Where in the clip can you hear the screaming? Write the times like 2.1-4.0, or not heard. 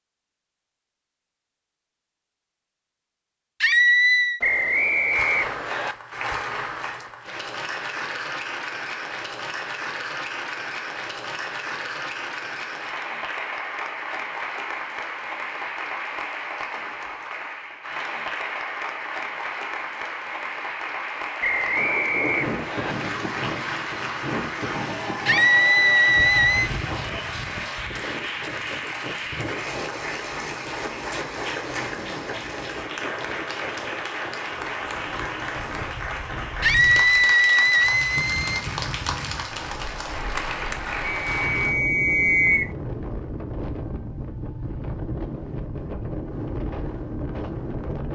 3.6-4.4, 25.2-26.7, 36.6-38.6.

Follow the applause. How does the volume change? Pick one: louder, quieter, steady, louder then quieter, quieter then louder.
steady.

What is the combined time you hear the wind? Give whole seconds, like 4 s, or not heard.
26 s.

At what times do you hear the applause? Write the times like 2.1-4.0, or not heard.
5.1-41.8.